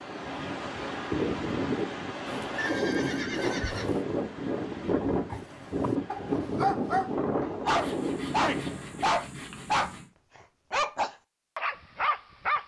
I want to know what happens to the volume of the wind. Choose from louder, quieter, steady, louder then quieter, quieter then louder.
steady.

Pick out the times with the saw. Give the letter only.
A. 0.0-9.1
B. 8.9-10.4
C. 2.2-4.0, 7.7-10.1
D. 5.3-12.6
C.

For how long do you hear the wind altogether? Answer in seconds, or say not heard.
9 s.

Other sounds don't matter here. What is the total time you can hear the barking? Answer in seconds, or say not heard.
7 s.